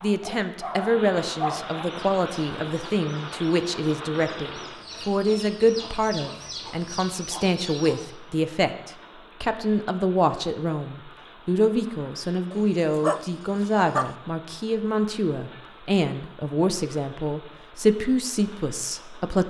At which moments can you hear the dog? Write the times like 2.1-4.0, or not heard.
0.0-1.9, 12.5-14.1.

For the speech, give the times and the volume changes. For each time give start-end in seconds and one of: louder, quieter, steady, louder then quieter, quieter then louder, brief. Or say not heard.
0.0-19.4 steady.